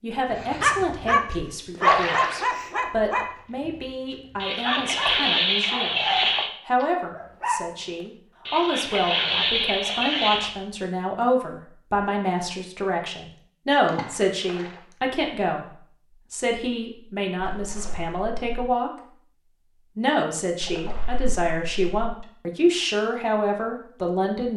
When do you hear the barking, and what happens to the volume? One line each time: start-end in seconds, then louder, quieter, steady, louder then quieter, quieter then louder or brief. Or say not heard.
0.3-7.7 quieter then louder.